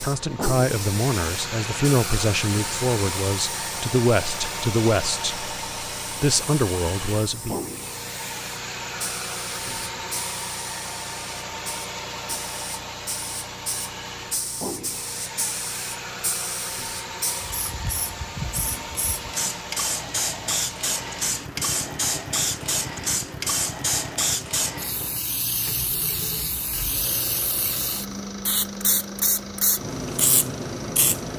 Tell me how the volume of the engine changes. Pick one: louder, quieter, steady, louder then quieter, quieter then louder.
quieter.